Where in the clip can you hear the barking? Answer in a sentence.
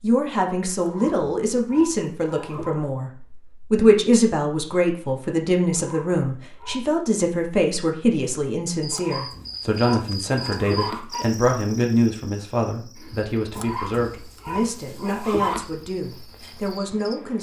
The barking can be heard from 0.8 to 2.8 s, from 5.7 to 7.0 s, from 8.9 to 11.2 s and from 13.5 to 15.7 s.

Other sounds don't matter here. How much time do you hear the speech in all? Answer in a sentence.
You can hear the speech for 17 seconds altogether.